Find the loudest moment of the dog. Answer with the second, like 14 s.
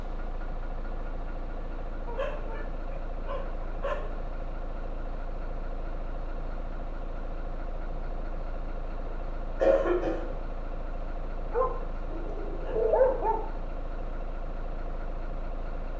13 s.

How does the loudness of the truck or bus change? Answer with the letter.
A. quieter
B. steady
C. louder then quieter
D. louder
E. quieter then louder
B.